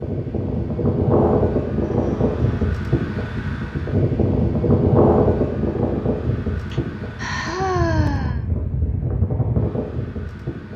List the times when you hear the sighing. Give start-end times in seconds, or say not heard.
1.9-2.7, 6.7-8.4.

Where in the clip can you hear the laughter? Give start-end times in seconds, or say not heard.
not heard.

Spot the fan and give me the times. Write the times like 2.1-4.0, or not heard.
0.0-10.7.